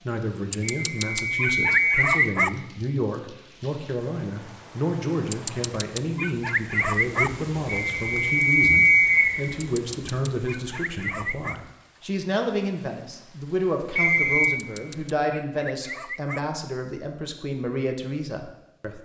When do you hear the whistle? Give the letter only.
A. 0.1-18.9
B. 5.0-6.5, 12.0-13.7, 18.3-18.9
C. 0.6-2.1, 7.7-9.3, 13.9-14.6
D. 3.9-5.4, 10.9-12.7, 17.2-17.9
C.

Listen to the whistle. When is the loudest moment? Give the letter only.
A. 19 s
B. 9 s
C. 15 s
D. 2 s
B.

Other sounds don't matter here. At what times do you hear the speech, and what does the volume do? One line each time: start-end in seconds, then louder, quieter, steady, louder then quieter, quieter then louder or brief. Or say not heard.
0.1-18.9 steady.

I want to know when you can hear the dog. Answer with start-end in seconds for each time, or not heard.
0.5-2.5, 5.3-7.3, 9.6-11.6, 14.6-16.4.